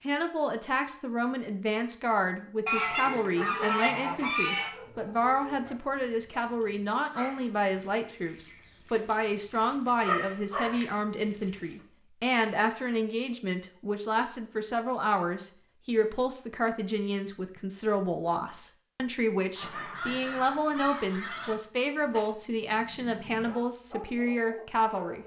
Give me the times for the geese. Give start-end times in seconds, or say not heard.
2.6-4.7, 19.6-21.6.